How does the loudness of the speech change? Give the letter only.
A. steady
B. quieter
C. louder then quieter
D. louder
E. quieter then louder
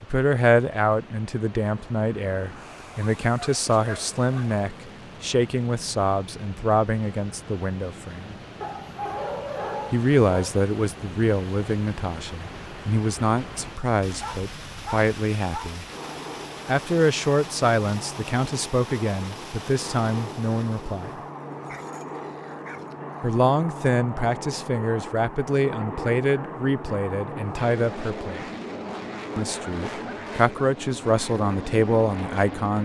A.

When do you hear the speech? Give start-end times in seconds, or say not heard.
0.0-8.3, 9.9-15.8, 16.6-21.2, 23.2-28.5, 29.4-32.8.